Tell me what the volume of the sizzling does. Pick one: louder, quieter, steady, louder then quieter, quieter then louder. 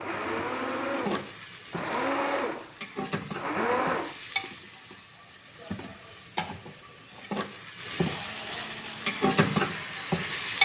louder.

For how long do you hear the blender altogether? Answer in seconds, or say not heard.
7 s.